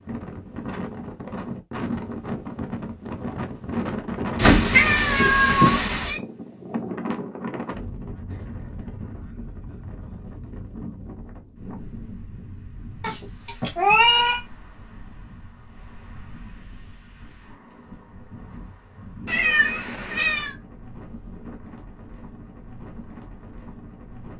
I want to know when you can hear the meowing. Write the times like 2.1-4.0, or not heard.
4.3-6.2, 13.0-14.4, 19.2-20.6.